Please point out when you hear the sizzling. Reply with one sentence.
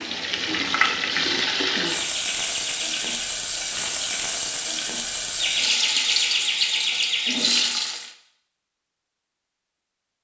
You can hear the sizzling from 0.0 to 8.1 s.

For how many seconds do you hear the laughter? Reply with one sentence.
You can hear the laughter for 3 seconds altogether.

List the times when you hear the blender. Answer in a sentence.
The blender can't be heard in this clip.